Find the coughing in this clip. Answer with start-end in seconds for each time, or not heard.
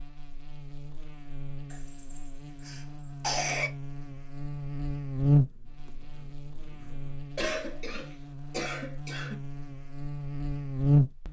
1.7-3.7, 7.3-9.3.